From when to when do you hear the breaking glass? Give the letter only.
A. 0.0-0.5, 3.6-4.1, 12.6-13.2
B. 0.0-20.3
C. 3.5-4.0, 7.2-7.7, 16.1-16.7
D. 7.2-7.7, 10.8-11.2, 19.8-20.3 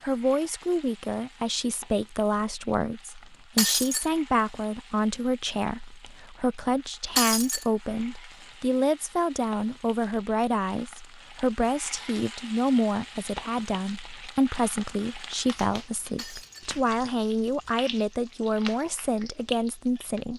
C.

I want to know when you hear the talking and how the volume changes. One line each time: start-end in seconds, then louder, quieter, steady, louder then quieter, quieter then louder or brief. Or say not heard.
0.0-20.3 steady.